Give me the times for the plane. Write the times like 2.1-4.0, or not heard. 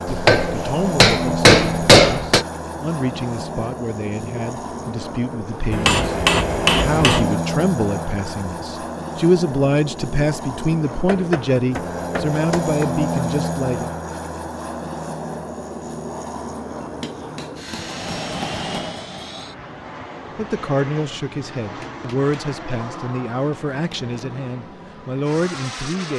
0.0-26.1.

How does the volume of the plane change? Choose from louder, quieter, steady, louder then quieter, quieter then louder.
quieter.